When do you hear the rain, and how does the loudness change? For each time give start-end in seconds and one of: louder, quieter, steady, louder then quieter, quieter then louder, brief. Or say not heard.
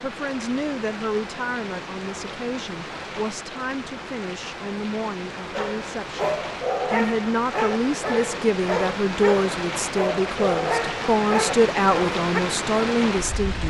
0.0-13.6 louder.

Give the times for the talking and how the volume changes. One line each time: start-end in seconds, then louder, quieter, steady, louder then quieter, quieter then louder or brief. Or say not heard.
0.0-13.6 louder.